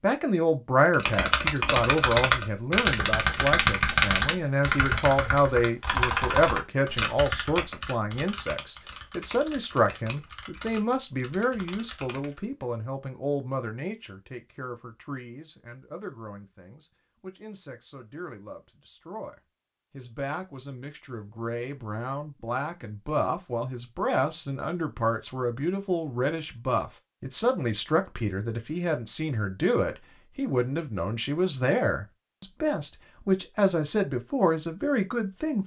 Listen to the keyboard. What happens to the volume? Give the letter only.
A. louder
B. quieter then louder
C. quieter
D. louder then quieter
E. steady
C.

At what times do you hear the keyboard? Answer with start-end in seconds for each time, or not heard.
0.9-12.4.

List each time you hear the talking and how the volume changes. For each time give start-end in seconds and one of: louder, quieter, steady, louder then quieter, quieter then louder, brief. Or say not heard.
0.0-35.6 quieter then louder.